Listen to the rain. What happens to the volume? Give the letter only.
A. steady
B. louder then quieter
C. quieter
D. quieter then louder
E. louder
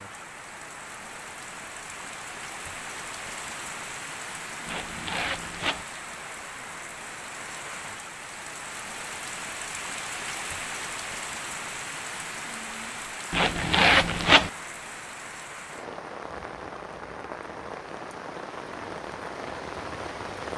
A.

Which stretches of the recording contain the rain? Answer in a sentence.
You can hear the rain from 0.0 to 20.5 s.